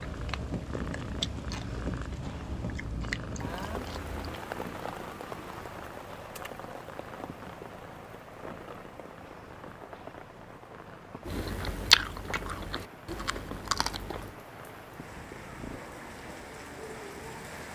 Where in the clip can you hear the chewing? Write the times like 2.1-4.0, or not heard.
0.0-4.3, 11.2-14.3.